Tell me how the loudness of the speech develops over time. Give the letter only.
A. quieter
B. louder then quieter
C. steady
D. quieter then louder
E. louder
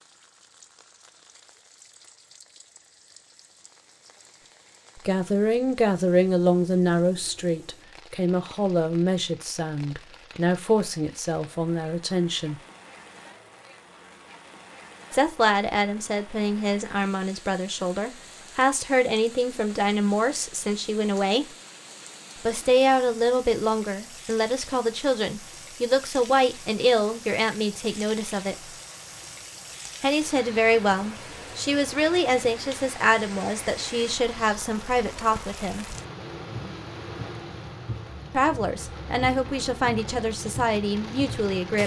C.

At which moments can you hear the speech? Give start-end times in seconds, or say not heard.
5.0-12.6, 15.1-21.4, 22.4-28.8, 30.0-35.9, 38.3-41.8.